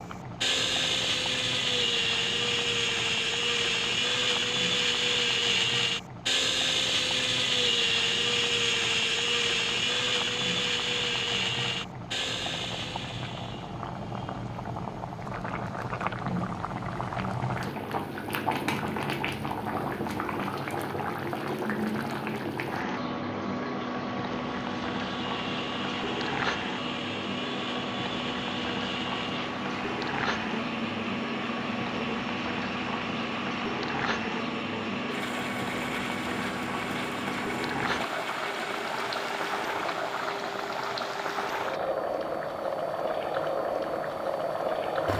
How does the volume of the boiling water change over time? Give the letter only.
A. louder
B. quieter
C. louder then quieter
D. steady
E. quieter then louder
A.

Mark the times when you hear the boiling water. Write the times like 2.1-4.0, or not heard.
0.0-45.1.